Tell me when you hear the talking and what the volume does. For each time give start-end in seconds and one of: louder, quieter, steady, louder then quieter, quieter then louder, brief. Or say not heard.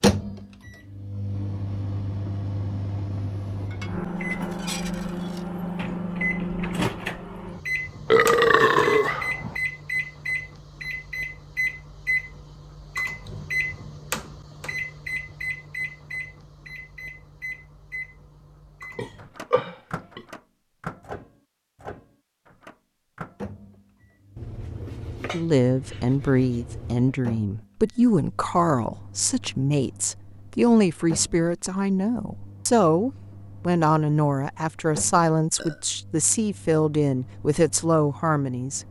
25.3-38.8 steady.